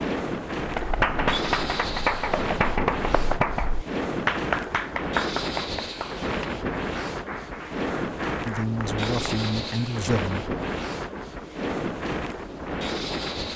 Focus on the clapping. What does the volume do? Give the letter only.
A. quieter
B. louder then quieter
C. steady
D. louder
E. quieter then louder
A.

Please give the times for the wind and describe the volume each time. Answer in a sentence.
You can hear the wind from 0.0 to 13.5 s, at a steady volume.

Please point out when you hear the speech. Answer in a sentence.
The speech can be heard from 8.4 to 10.4 s.